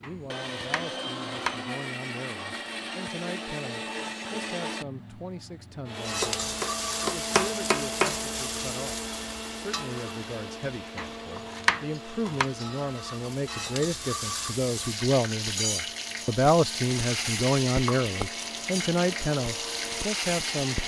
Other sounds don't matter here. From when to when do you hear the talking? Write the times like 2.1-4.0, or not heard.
0.0-20.8.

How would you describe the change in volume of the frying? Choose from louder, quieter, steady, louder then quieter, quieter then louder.
quieter then louder.